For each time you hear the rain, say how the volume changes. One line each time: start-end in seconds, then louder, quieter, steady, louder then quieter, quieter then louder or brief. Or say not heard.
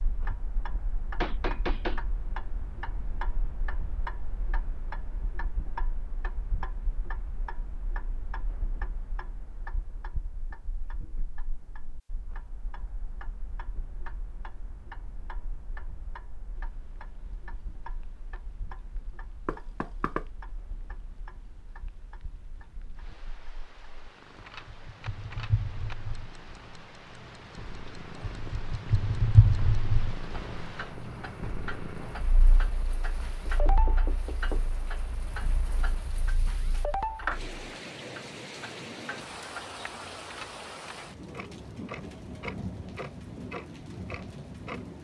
16.5-44.9 louder.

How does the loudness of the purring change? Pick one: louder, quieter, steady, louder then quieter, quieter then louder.
louder then quieter.